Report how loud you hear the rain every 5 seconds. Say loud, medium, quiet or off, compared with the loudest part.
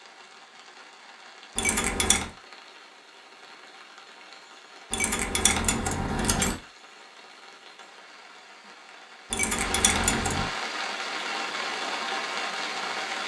quiet, medium, loud.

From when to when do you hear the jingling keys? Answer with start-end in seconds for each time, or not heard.
1.6-2.3, 4.9-6.5, 9.3-10.5.